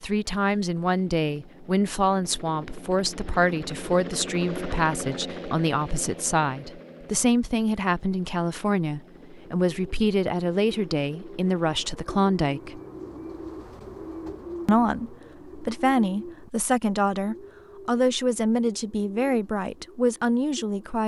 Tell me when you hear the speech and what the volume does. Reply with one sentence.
The speech can be heard from 0.0 to 12.8 s, at a steady volume; and from 14.7 to 21.0 s, at a steady volume.